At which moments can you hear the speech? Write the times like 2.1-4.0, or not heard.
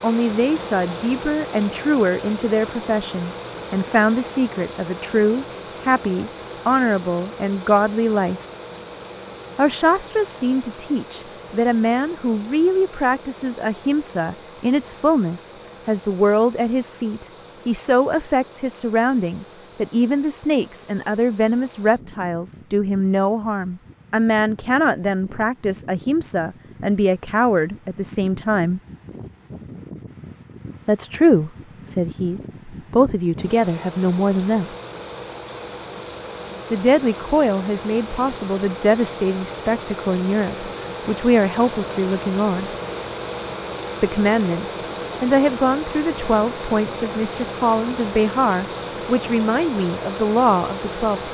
0.0-8.4, 9.6-28.8, 30.9-34.8, 36.7-42.8, 44.0-51.2.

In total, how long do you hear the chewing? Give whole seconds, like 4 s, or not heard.
not heard.